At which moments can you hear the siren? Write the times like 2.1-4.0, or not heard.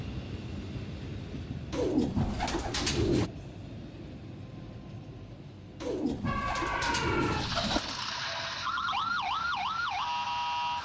6.2-10.7.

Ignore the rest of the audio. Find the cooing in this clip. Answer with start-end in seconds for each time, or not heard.
1.7-3.3, 5.8-8.0.